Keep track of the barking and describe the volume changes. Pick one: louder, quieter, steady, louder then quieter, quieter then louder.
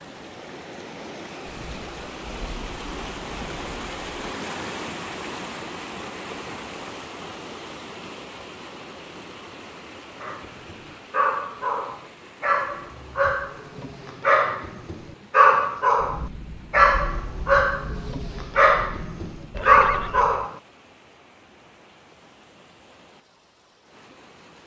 louder.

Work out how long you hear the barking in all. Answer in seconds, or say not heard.
10 s.